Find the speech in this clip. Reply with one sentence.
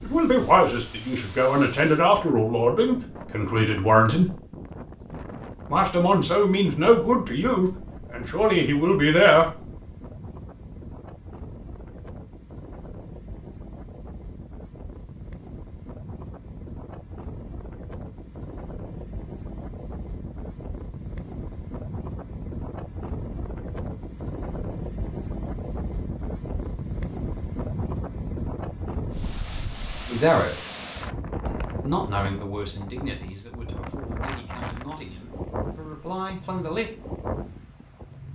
You can hear the speech from 0.0 to 4.3 s, from 5.7 to 9.6 s, from 30.1 to 30.6 s and from 31.4 to 36.9 s.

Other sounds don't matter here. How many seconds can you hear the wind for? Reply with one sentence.
You can hear the wind for 38 seconds altogether.